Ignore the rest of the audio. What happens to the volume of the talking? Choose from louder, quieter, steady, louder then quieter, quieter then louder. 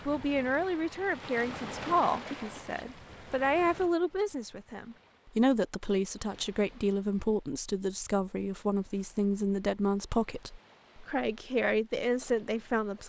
steady.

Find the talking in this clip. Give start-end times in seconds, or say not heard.
0.1-13.0.